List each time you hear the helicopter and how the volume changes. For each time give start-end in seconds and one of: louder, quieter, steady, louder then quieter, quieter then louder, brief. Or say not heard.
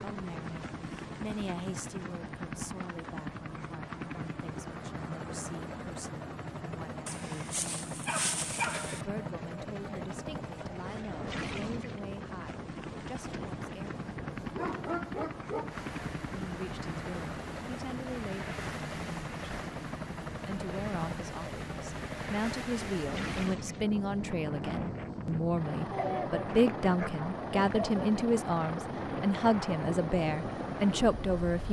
0.0-31.6 steady.